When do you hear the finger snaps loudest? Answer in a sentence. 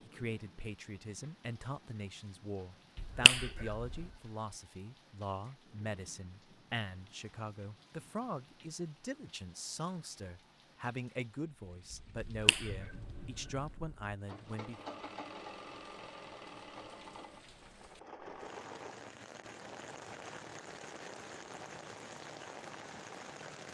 The volume of the finger snaps peaks at 3 seconds.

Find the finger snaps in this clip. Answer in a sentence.
The finger snaps can be heard from 3.0 to 4.0 s and from 12.2 to 14.2 s.